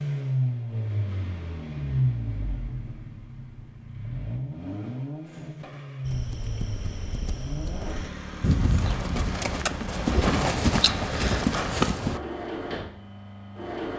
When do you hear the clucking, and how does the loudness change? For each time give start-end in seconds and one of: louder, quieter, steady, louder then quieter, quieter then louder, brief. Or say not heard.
not heard.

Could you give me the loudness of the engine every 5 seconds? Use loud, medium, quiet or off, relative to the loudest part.
loud, medium, medium.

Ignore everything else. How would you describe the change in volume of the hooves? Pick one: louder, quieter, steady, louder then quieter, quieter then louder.
louder.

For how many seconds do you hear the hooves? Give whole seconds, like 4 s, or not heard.
6 s.